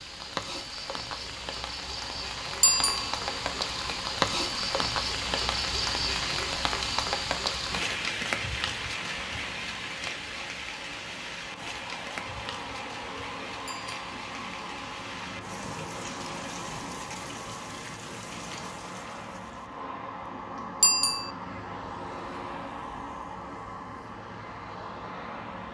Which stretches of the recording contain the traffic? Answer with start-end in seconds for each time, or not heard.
0.0-25.6.